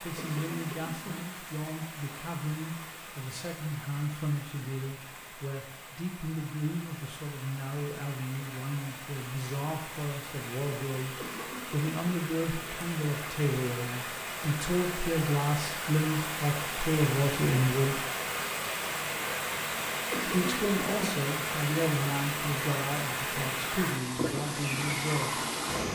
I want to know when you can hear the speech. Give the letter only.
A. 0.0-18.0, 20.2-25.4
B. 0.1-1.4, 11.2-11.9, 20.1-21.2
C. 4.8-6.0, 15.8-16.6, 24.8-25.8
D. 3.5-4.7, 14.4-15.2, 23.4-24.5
A.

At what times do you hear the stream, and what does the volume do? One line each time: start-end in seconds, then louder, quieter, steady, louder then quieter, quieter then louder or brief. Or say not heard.
0.0-25.8 louder.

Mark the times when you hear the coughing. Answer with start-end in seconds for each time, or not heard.
0.1-1.4, 11.2-11.9, 20.1-21.2.